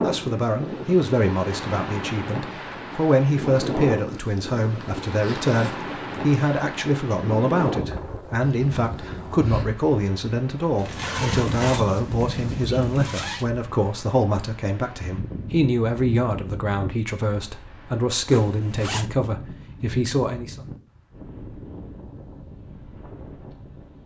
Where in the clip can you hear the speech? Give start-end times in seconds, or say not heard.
0.0-20.6.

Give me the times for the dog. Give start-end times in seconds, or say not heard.
not heard.